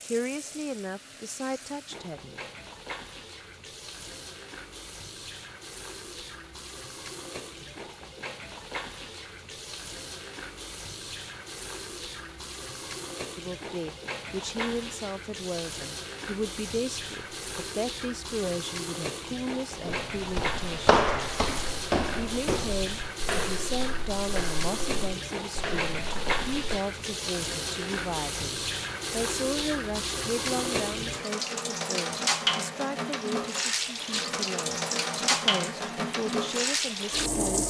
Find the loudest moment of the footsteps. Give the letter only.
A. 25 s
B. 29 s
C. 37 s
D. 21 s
D.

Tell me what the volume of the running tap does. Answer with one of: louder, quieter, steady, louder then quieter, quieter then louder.
louder.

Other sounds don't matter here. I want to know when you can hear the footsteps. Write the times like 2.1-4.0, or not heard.
19.8-26.8.